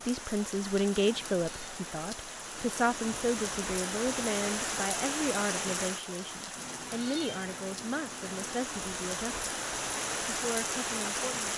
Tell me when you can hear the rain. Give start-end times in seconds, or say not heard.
0.0-11.5.